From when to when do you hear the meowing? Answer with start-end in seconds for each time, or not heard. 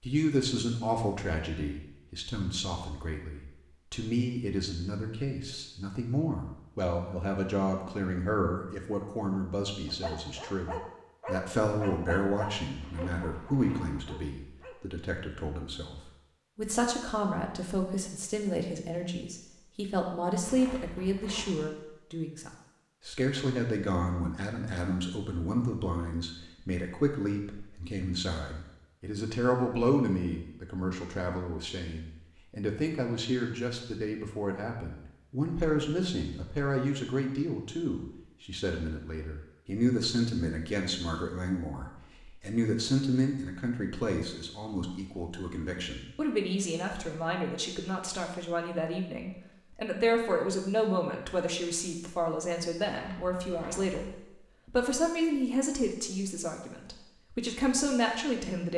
not heard.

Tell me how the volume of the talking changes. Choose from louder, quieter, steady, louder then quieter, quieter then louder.
steady.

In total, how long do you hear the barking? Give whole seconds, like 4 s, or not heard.
5 s.